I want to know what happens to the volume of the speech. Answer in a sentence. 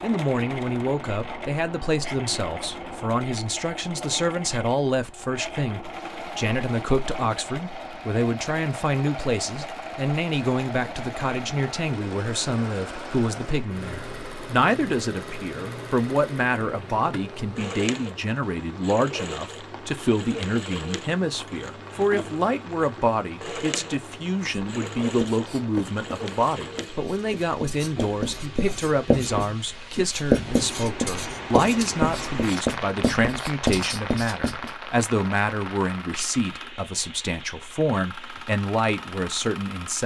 The volume of the speech stays about the same.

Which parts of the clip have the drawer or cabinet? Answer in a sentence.
You can't hear the drawer or cabinet here.